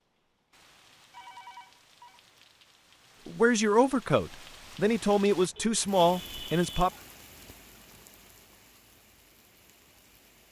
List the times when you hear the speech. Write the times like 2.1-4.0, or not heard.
3.2-6.9.